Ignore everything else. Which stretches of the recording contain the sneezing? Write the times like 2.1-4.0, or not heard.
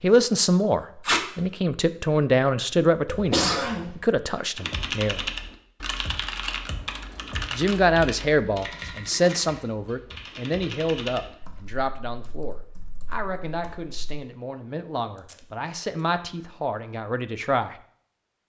3.0-3.9.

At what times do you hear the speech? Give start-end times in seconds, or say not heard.
0.0-5.2, 7.5-17.8.